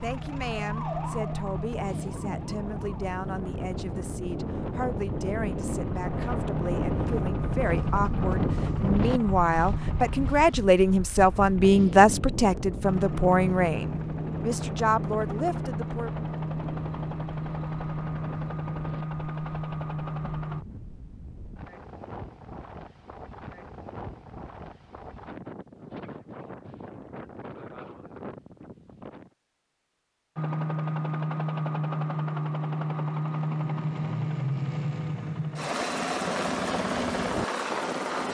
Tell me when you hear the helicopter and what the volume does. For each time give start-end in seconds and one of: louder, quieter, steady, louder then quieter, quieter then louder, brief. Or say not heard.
0.0-10.3 quieter then louder
12.8-20.6 steady
30.4-38.2 steady.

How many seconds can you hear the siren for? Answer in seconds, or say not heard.
3 s.